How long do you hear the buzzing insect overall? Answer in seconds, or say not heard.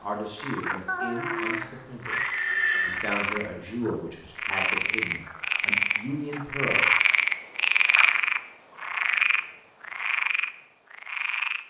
not heard.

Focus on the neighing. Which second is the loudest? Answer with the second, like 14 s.
3 s.